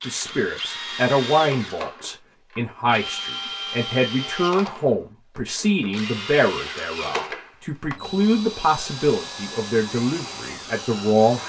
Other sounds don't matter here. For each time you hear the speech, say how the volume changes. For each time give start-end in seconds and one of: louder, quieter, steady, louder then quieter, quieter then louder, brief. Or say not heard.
0.1-11.4 steady.